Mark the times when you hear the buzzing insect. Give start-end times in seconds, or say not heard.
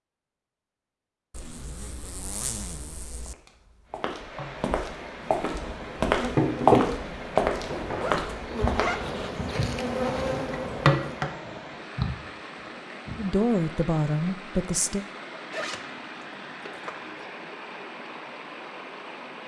4.3-11.3.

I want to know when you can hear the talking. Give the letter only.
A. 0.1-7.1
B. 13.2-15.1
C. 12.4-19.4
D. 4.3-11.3
B.